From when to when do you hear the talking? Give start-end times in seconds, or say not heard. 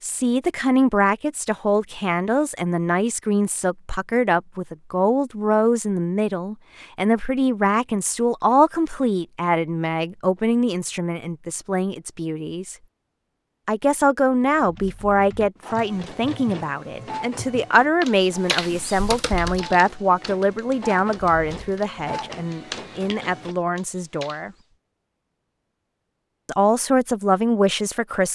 0.0-12.8, 13.7-24.5, 26.4-28.3.